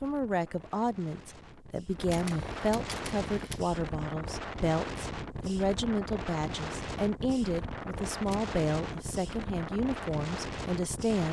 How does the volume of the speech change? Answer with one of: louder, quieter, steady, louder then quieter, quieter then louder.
steady.